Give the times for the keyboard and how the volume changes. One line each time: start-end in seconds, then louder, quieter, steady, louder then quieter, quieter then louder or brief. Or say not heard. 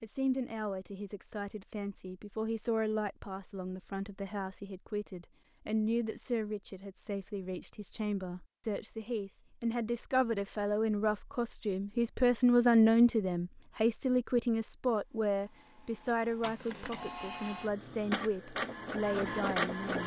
not heard.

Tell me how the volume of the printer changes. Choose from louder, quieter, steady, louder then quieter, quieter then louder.
louder.